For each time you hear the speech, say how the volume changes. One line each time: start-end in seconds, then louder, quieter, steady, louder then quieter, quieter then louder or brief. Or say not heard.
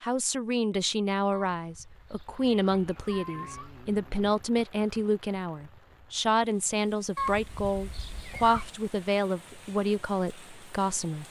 0.0-11.2 steady.